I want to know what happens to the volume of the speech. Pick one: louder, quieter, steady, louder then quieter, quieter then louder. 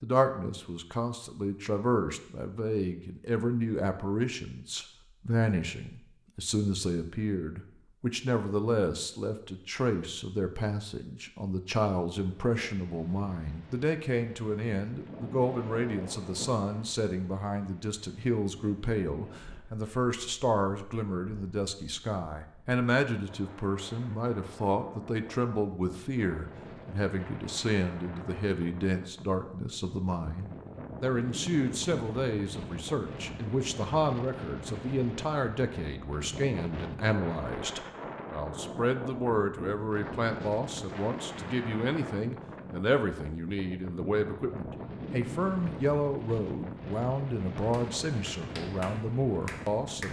steady.